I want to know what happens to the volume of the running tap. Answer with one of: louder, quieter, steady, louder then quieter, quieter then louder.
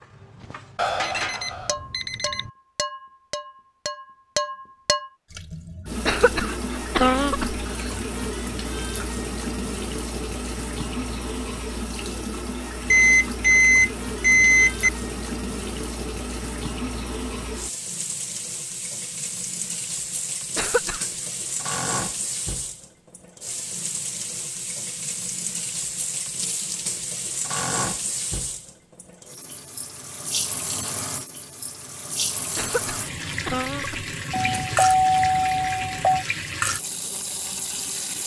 steady.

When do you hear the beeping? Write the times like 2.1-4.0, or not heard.
0.8-2.5, 12.9-14.9, 34.3-36.2.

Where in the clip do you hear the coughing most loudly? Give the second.
7 s.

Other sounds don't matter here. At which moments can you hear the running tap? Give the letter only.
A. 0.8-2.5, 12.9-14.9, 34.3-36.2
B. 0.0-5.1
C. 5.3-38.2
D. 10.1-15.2
C.